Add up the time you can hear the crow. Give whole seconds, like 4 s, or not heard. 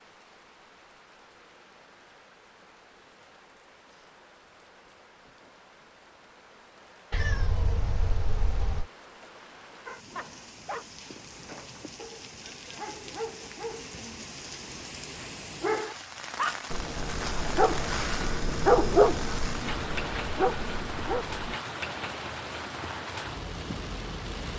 not heard.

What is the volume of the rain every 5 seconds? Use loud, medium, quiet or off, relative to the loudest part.
quiet, quiet, medium, loud, loud.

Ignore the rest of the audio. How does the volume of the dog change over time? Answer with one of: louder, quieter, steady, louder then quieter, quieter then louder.
louder then quieter.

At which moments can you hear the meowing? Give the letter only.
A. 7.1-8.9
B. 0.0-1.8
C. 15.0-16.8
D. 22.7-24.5
A.